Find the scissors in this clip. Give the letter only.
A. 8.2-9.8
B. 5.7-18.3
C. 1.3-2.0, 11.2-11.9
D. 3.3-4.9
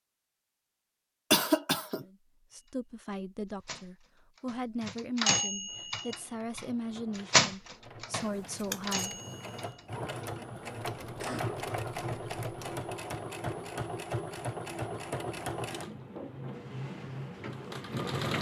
A.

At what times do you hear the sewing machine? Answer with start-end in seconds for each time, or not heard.
5.7-18.3.